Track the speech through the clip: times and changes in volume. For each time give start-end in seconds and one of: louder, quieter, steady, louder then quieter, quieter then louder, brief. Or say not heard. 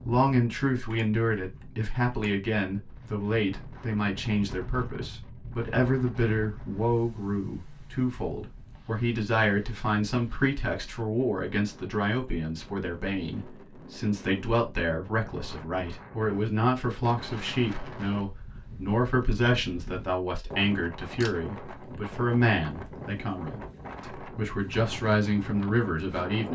0.0-26.4 steady.